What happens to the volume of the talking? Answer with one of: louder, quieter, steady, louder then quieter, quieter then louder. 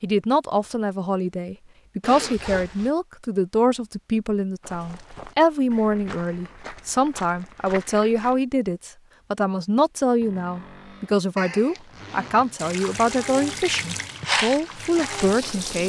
steady.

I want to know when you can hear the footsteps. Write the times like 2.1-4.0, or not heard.
4.6-8.4, 14.2-15.8.